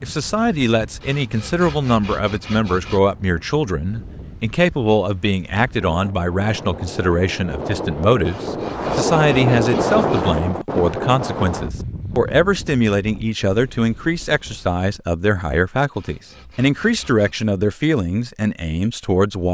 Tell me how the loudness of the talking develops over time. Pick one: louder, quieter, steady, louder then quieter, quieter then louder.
steady.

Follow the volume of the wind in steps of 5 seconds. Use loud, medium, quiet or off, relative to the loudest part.
quiet, loud, loud, off.